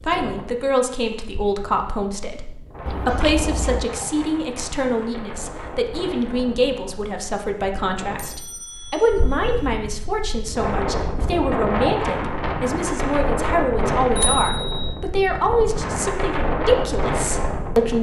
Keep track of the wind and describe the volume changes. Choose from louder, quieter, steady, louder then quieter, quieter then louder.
louder.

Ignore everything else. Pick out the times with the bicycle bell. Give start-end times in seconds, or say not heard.
2.9-3.9, 8.2-9.7, 14.2-14.9.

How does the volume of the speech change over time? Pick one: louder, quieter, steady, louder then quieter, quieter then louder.
steady.